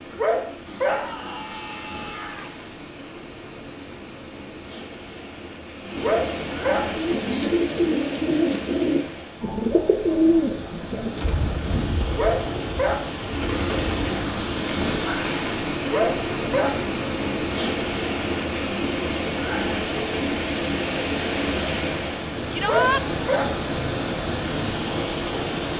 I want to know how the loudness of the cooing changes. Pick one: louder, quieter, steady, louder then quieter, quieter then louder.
quieter.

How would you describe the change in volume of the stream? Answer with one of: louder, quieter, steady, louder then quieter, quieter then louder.
louder.